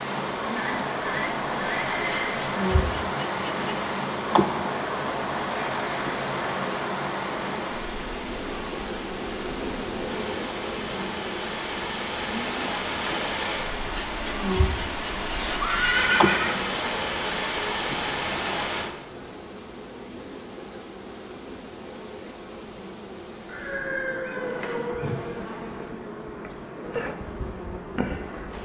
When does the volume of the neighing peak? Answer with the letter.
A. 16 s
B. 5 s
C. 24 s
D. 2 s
A.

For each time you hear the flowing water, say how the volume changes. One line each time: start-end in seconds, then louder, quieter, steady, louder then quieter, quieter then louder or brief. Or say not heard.
0.0-18.9 quieter then louder.